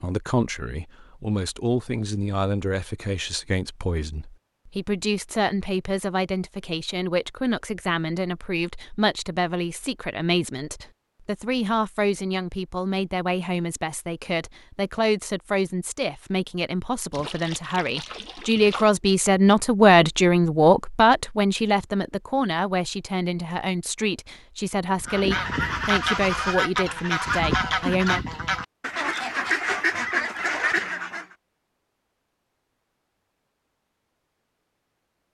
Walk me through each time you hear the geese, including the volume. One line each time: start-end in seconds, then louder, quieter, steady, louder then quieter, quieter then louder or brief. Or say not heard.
24.9-31.2 steady.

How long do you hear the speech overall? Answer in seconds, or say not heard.
28 s.